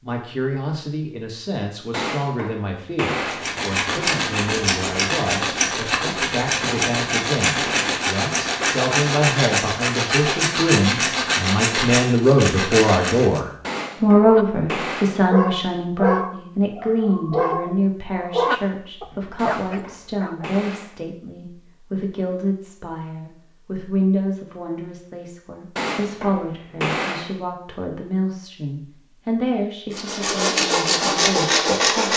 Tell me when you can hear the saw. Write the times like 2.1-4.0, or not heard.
3.1-13.4, 29.9-32.1.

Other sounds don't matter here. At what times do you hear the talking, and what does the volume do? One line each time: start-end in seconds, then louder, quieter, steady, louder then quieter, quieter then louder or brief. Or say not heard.
0.0-32.1 louder then quieter.